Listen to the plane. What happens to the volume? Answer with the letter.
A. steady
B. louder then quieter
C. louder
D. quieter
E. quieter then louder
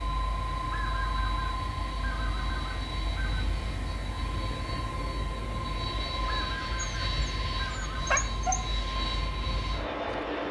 A.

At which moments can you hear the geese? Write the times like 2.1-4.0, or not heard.
0.7-3.5, 6.2-8.1.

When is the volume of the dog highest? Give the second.
8 s.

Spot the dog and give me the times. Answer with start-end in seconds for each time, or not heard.
6.8-8.6.